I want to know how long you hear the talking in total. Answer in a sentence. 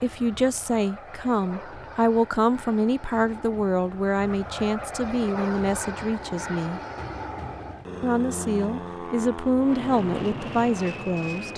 The talking can be heard for 10 seconds in total.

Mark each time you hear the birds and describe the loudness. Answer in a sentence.
You can't hear the birds here.